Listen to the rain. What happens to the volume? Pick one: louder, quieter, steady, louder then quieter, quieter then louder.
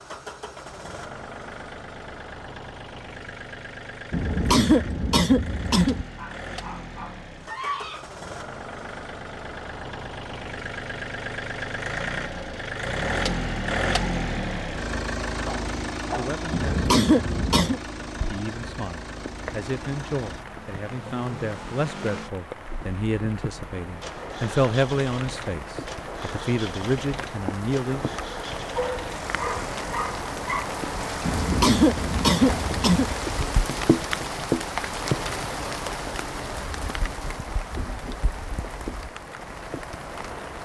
louder then quieter.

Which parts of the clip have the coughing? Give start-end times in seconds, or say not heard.
4.1-6.0, 16.5-17.8, 31.2-33.1.